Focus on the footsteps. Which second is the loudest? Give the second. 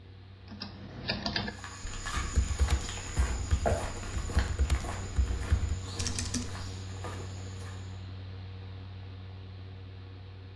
4 s.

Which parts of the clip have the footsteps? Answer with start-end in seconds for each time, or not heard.
1.4-8.0.